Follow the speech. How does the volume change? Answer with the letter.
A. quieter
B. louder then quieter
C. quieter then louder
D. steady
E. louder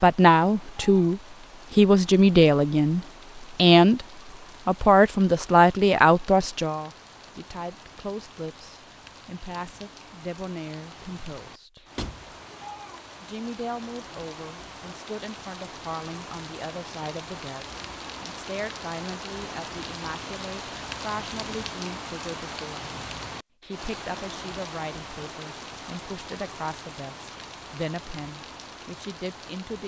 A.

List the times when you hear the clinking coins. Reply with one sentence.
The clinking coins can't be heard in this clip.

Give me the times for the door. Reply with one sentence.
The door can be heard from 11.9 to 12.3 s.